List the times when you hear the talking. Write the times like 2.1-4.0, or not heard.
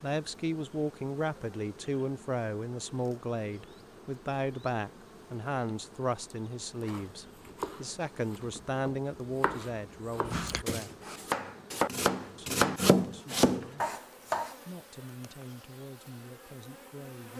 0.0-11.2, 12.3-13.9, 14.7-17.3.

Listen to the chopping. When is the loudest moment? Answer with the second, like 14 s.
13 s.